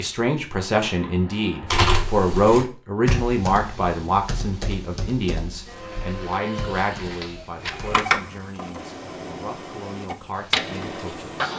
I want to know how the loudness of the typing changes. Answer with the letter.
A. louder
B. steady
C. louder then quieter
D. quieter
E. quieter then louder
D.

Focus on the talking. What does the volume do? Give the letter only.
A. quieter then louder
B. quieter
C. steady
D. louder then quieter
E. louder
B.